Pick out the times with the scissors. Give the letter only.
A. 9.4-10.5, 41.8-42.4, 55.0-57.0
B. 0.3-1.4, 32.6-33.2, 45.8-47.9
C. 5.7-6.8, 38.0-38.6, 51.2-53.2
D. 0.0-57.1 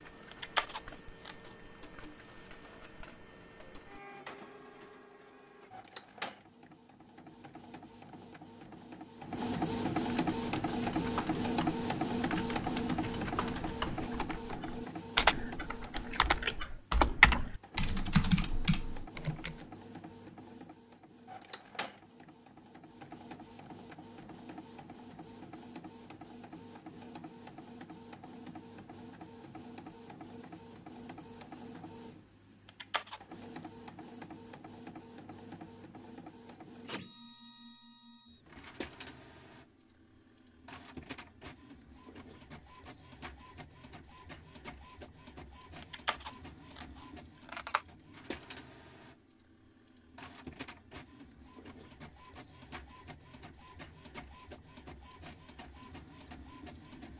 B.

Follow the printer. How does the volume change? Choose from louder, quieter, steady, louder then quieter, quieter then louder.
quieter.